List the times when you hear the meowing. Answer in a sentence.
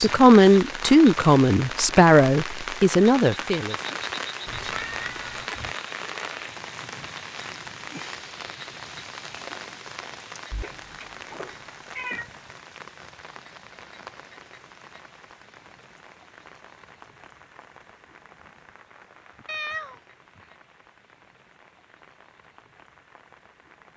You can hear the meowing from 4.5 to 5.8 s, from 10.5 to 12.3 s and from 19.4 to 20.0 s.